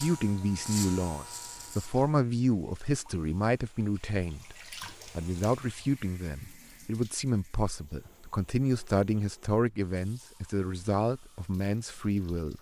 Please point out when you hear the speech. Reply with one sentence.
You can hear the speech from 0.0 to 12.5 s.